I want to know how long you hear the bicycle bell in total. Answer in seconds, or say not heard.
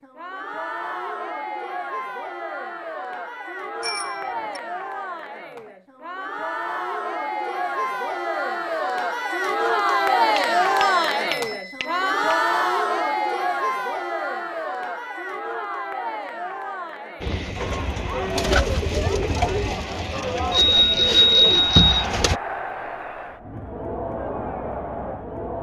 4 s.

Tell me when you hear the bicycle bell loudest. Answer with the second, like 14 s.
21 s.